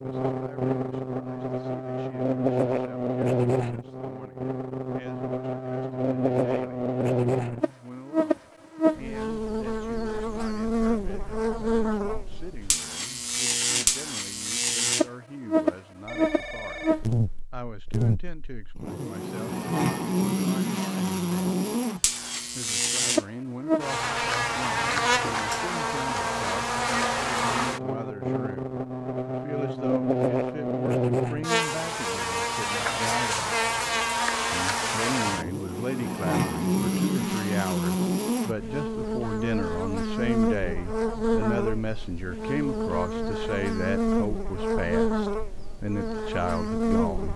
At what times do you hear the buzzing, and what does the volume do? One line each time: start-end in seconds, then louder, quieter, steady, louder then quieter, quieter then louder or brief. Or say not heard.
0.0-47.3 steady.